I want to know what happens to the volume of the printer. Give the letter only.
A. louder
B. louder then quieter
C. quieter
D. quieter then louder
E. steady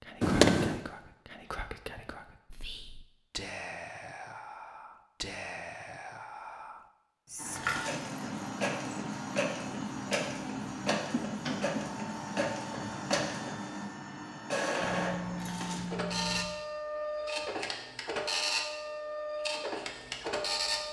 E.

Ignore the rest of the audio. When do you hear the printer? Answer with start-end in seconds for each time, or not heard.
7.3-20.8.